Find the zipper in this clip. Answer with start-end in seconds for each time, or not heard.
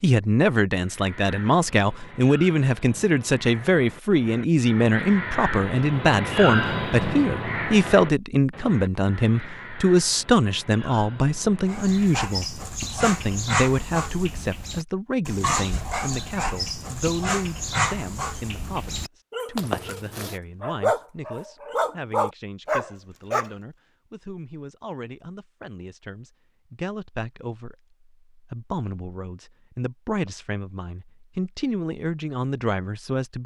19.6-20.4.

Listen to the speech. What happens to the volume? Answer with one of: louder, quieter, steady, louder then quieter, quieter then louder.
quieter then louder.